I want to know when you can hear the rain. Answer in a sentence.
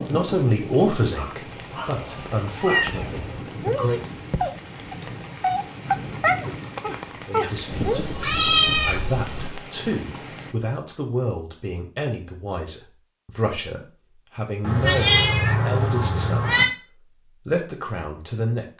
The rain can be heard from 0.0 to 10.6 s.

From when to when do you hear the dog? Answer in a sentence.
You can hear the dog from 1.1 to 8.1 s.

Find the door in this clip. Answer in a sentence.
You can't hear the door here.